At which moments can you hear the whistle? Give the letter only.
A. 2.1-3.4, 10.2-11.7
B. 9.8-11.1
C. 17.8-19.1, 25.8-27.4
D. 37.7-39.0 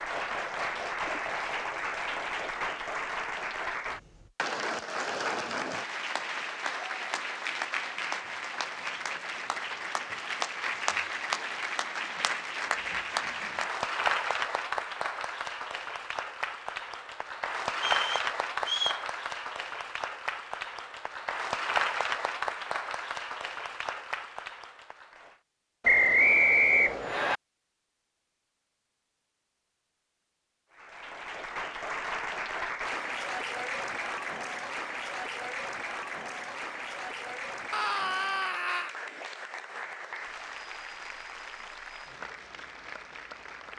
C.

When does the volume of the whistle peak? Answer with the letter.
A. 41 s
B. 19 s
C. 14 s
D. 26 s
D.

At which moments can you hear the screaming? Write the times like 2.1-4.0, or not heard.
37.7-39.0.